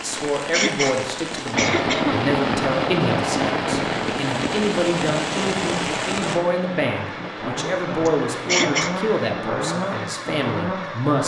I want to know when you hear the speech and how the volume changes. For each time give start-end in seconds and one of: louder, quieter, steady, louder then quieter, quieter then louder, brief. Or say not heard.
0.0-11.2 steady.